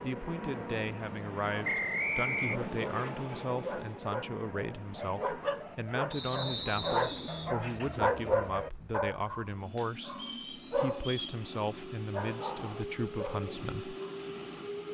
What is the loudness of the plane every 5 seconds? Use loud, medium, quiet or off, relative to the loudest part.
loud, medium, loud.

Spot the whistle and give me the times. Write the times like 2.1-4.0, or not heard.
1.6-2.6, 6.1-7.5, 10.1-11.4.